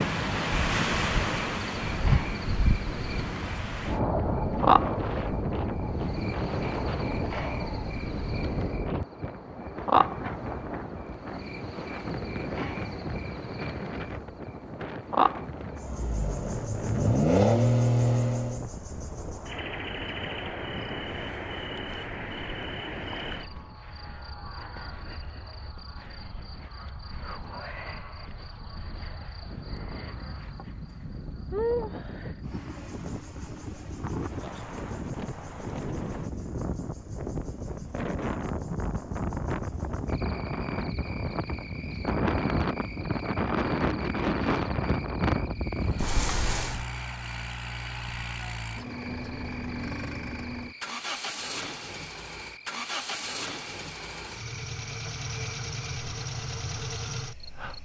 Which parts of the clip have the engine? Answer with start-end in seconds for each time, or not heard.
15.8-18.6, 45.8-57.8.